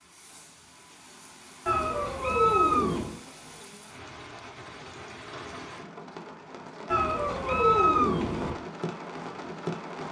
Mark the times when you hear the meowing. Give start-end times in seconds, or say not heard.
1.6-3.2, 6.9-8.6.